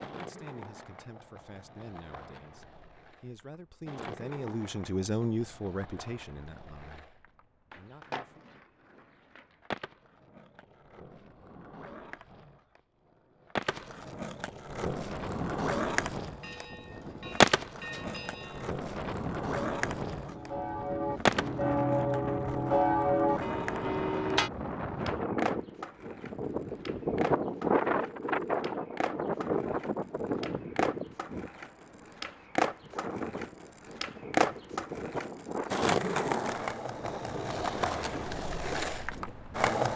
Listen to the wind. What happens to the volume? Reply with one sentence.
The volume of the wind goes up, then down.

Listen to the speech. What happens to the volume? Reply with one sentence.
The loudness of the speech goes up, then down.